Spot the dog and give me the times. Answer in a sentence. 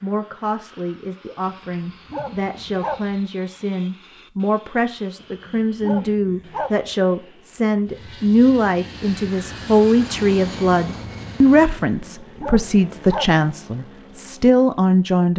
You can hear the dog from 1.4 to 3.1 s, from 5.2 to 6.8 s and from 11.8 to 13.3 s.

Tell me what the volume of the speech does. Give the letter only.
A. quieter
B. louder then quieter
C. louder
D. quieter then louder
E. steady
C.